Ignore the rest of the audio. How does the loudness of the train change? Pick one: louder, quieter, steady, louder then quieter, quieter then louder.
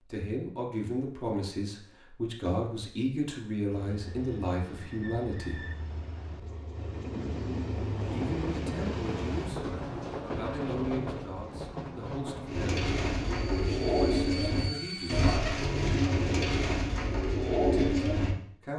louder then quieter.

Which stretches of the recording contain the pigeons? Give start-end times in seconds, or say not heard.
12.4-18.4.